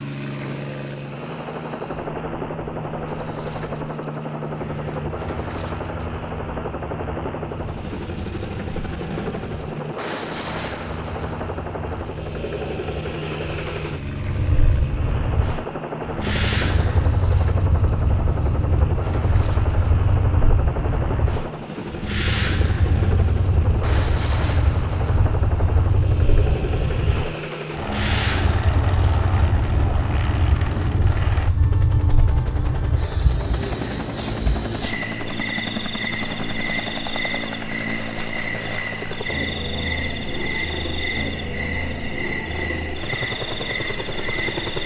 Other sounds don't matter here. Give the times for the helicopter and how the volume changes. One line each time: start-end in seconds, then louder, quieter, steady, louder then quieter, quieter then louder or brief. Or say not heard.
0.0-44.8 steady.